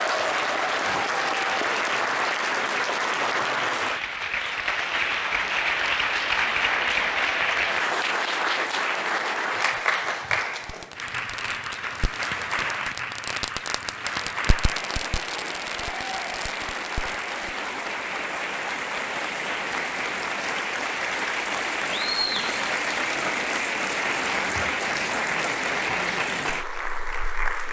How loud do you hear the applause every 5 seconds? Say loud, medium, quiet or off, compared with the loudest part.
loud, loud, medium, medium, loud, loud.